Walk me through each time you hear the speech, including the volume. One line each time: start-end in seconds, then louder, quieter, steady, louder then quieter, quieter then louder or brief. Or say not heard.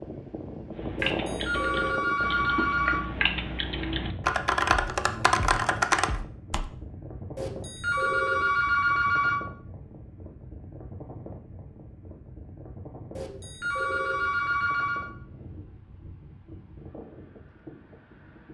not heard.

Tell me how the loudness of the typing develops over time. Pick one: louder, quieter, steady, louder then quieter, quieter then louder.
louder.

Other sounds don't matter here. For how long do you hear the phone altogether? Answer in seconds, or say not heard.
6 s.